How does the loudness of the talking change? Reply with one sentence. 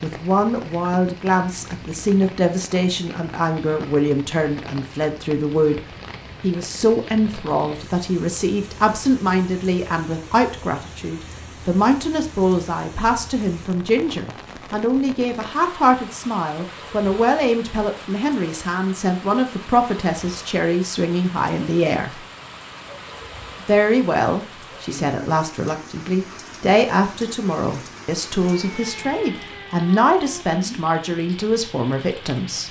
The volume of the talking stays about the same.